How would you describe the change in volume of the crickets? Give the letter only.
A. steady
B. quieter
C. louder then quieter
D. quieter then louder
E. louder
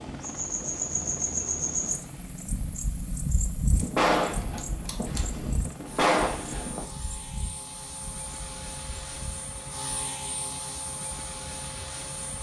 B.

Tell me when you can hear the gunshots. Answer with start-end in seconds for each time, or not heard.
3.7-6.8.